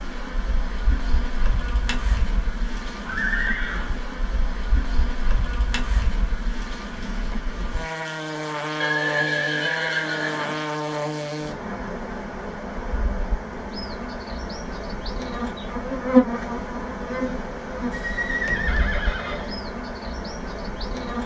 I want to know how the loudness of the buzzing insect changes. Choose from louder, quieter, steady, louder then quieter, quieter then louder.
louder then quieter.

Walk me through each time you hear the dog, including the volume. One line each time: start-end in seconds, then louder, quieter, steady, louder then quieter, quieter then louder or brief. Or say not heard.
not heard.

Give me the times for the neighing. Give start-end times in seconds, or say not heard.
3.0-3.9, 8.8-10.6, 17.9-19.6.